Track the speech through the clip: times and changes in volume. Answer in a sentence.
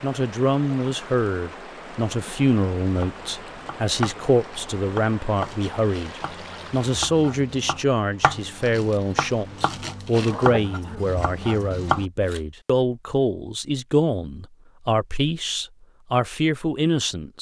You can hear the speech from 0.0 to 17.3 s, at a steady volume.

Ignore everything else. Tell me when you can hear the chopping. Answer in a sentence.
The chopping can be heard from 2.8 to 12.4 s.